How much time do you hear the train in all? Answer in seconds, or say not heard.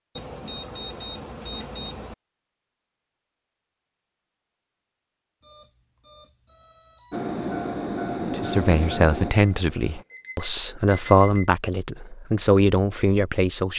3 s.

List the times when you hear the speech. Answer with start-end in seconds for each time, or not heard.
8.3-13.7.